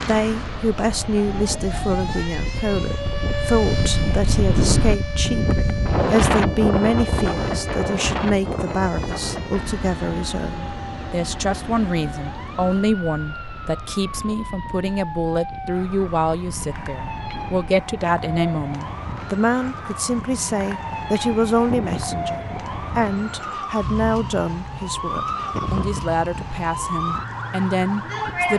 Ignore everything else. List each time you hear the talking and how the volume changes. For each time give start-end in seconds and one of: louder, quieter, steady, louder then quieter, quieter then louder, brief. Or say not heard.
0.0-28.5 steady.